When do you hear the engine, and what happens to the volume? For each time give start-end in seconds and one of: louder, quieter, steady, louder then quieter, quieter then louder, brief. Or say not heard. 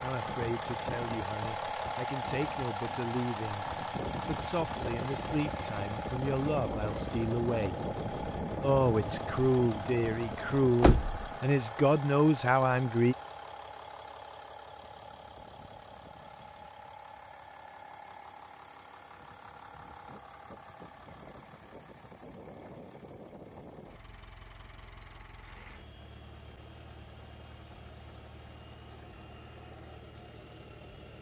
0.0-31.1 quieter.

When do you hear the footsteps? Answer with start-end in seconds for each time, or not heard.
not heard.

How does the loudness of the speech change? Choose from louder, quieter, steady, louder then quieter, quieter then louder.
louder.